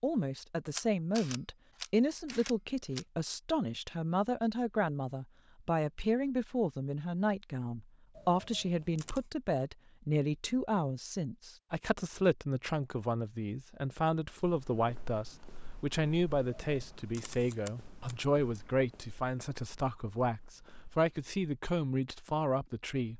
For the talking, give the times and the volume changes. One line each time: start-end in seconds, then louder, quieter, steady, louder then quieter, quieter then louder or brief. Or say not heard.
0.0-23.1 steady.